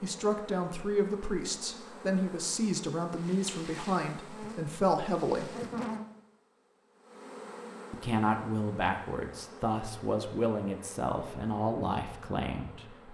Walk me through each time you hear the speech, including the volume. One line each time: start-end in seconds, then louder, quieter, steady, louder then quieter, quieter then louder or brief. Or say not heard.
0.0-5.5 steady
7.9-13.0 steady.